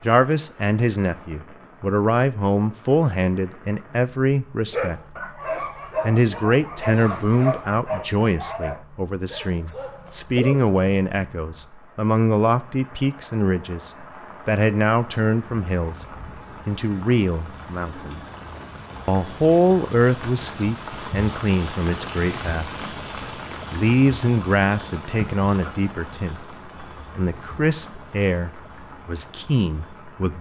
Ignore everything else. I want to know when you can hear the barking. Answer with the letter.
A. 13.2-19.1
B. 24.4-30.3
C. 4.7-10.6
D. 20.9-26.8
C.